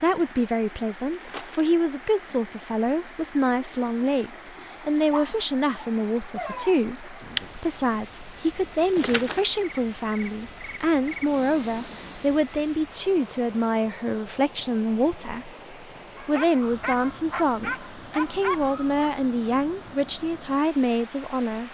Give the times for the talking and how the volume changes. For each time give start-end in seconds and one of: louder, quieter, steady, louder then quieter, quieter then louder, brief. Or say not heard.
0.0-21.6 steady.